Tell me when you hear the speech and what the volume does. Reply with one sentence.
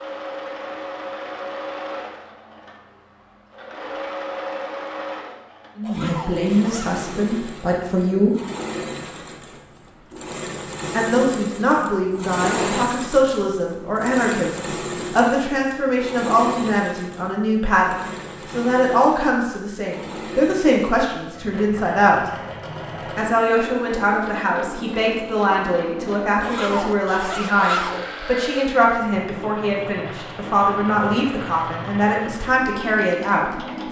You can hear the speech briefly from 5.8 to 8.3 s; from 10.9 to 22.2 s, at a steady volume; and from 23.1 to 33.5 s, at a steady volume.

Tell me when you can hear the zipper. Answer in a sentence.
You can hear the zipper from 5.8 to 7.0 s, from 12.3 to 12.9 s and from 26.4 to 28.1 s.